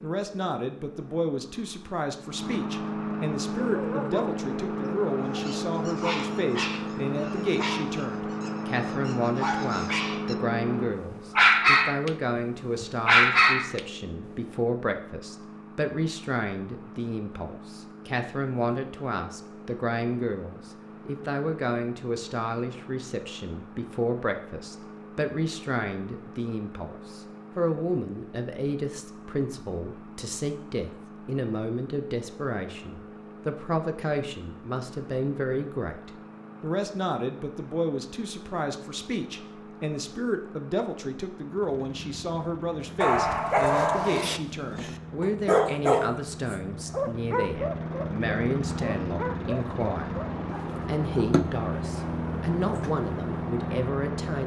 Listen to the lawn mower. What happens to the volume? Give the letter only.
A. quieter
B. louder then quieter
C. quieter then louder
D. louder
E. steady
C.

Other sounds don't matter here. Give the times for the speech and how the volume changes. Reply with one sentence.
You can hear the speech from 0.0 to 54.4 s, at a steady volume.